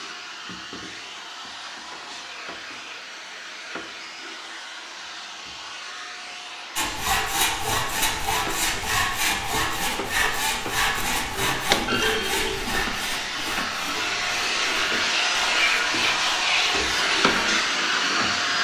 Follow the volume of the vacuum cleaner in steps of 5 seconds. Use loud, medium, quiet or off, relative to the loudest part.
quiet, quiet, medium, loud.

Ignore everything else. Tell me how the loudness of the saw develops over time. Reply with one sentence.
The loudness of the saw goes down.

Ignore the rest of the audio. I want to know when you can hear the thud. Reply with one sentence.
The thud can be heard from 11.7 to 13.0 s.